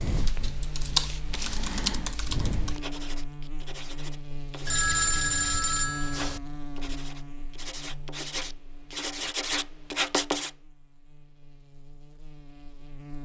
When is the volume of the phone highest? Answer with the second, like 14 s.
5 s.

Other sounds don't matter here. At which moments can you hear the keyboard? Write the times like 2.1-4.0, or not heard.
0.0-2.8.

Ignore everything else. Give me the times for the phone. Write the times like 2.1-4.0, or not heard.
4.7-6.4.